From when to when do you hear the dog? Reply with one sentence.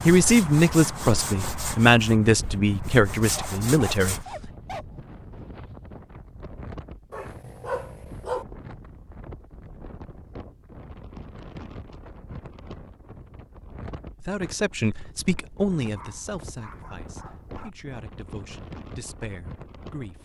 The dog can be heard from 3.3 to 5.0 s, from 7.1 to 8.4 s and from 15.9 to 17.7 s.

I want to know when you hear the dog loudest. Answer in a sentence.
The loudest moment of the dog is at 8 seconds.